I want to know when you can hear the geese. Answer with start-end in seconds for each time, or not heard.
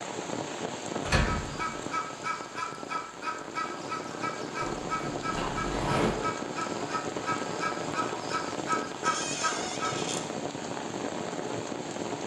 1.1-9.9.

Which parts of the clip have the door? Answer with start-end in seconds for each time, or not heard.
1.1-1.8, 4.6-6.2, 9.1-10.2.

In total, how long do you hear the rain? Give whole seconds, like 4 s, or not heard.
12 s.